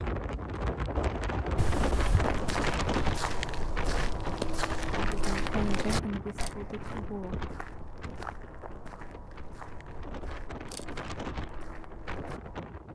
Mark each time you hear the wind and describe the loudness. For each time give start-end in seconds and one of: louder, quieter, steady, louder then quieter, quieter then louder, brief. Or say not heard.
0.0-12.9 quieter then louder.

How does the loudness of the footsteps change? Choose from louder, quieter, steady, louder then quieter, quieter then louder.
quieter.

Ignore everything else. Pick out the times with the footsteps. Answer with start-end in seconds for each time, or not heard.
2.1-12.6.